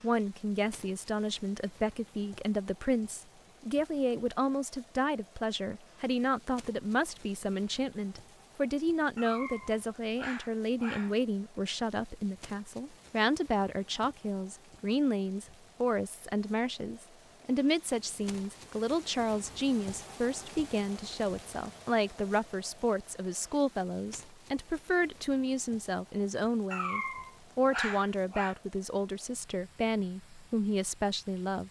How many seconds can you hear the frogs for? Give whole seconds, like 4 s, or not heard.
not heard.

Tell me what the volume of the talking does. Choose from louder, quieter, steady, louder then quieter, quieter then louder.
steady.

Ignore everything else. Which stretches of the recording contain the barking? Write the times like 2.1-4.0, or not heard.
9.2-11.2, 26.7-28.6.